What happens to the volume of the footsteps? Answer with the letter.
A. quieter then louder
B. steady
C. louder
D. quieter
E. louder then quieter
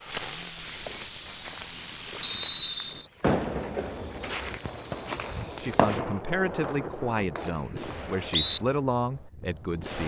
A.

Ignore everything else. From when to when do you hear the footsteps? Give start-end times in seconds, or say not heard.
0.6-6.0.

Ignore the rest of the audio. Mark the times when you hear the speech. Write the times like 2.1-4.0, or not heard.
5.6-10.0.